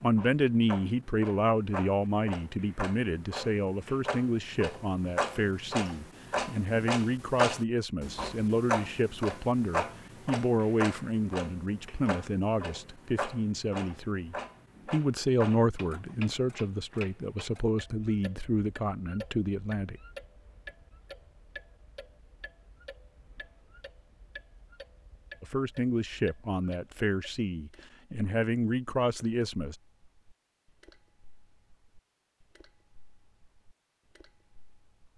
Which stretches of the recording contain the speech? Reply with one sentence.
You can hear the speech from 0.0 to 19.9 s and from 25.4 to 29.8 s.